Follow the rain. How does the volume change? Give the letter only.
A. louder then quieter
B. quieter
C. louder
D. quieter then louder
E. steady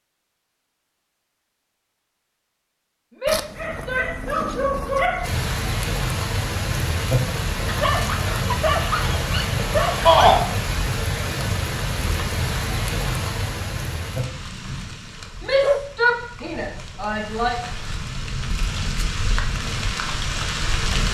D.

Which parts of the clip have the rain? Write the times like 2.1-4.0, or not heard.
5.2-21.1.